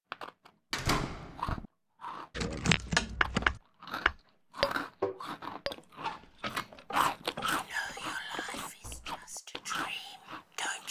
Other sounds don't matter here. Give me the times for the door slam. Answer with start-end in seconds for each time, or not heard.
0.7-1.6.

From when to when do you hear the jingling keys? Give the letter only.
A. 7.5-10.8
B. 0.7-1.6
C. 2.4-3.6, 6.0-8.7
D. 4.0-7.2
C.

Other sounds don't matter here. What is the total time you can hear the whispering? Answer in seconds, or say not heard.
3 s.